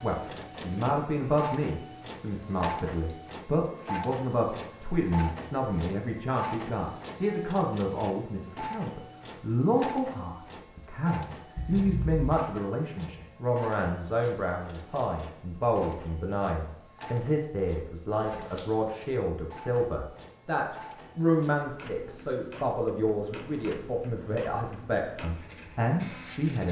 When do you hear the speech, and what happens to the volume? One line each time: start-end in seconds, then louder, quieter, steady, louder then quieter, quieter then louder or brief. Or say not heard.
0.0-26.6 steady.